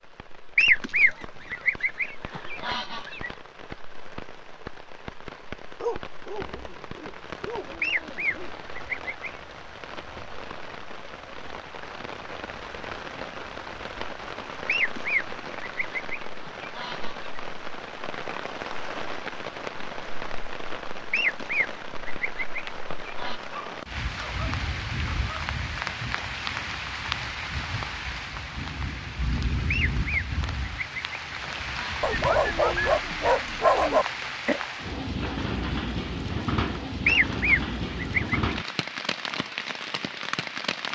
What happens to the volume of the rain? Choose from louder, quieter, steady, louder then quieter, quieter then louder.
louder.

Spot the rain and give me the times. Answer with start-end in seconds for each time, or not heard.
0.0-40.9.